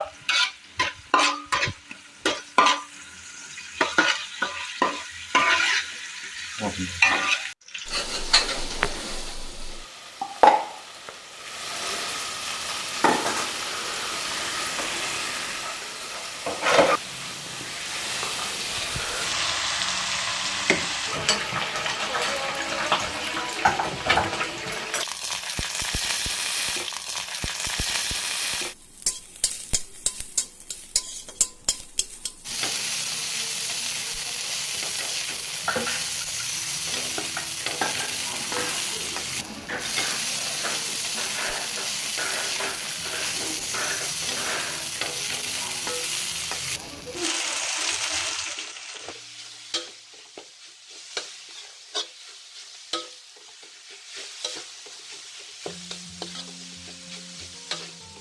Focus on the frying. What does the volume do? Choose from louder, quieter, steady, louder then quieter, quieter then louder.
quieter.